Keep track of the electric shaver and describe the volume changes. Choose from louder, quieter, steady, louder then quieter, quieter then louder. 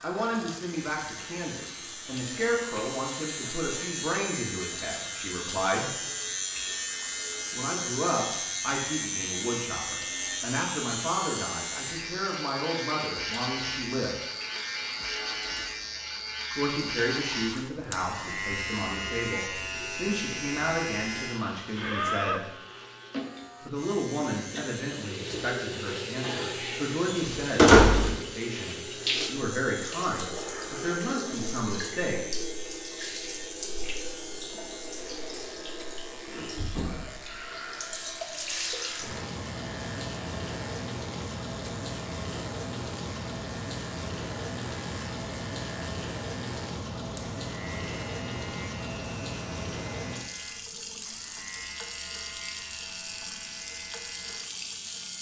quieter.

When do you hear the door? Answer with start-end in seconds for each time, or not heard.
27.1-28.1.